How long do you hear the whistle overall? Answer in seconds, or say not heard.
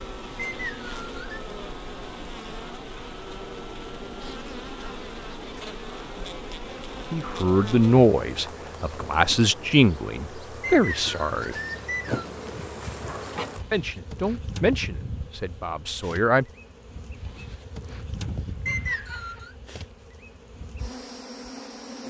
4 s.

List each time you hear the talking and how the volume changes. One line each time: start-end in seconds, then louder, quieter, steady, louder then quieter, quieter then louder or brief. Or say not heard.
7.1-11.6 quieter then louder
13.7-16.4 brief.